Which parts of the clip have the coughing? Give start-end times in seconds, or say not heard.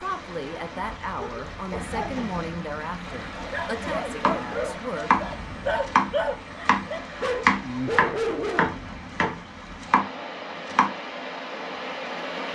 1.7-2.4.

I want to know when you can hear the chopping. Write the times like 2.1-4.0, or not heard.
3.8-4.4, 5.0-10.9.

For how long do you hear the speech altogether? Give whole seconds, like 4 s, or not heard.
5 s.